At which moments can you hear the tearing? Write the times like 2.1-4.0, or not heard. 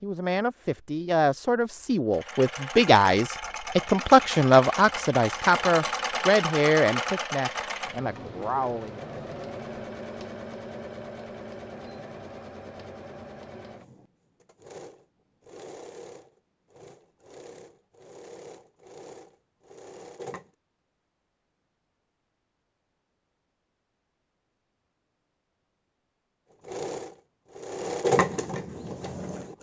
not heard.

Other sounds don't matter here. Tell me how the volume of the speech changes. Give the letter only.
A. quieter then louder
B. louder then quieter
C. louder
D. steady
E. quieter
B.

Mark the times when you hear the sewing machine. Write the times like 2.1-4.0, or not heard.
2.1-20.6, 26.6-29.5.